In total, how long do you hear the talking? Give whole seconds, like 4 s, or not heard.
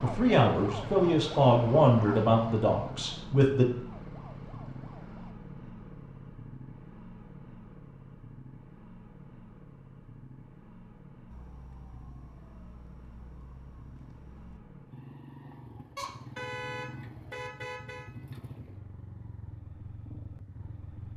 4 s.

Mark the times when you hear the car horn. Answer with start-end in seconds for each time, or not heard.
15.9-18.1.